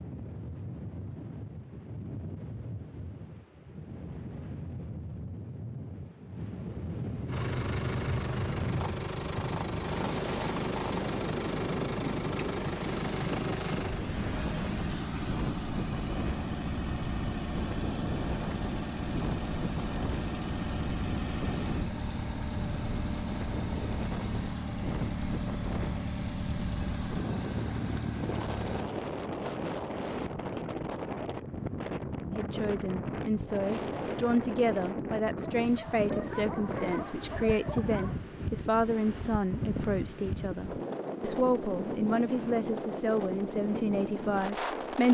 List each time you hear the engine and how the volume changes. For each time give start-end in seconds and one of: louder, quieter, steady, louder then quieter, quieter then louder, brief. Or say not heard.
7.2-28.9 steady.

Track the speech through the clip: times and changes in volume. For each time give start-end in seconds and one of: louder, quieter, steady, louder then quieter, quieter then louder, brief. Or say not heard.
32.3-45.0 steady.